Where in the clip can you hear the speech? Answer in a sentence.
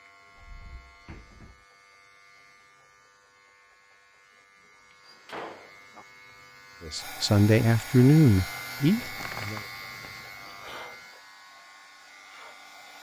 The speech can be heard from 6.8 to 9.6 s.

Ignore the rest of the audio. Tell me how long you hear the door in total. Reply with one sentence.
You can hear the door for 4 seconds altogether.